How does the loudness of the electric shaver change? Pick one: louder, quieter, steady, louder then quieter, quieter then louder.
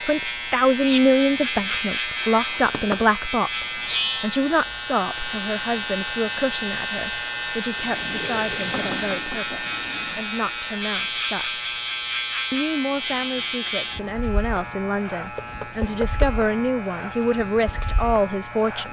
quieter.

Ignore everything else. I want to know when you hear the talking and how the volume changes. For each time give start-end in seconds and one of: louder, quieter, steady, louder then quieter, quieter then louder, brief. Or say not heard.
0.0-11.7 quieter
12.5-18.8 louder.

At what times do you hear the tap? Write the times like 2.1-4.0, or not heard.
7.7-10.3.